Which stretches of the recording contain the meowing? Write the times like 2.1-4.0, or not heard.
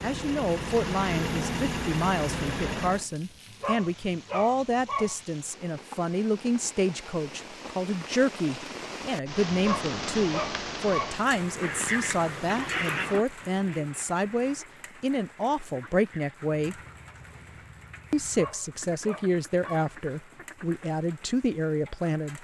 not heard.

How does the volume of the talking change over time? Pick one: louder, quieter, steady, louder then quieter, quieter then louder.
steady.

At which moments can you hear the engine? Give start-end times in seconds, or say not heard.
0.0-3.1, 11.2-13.2.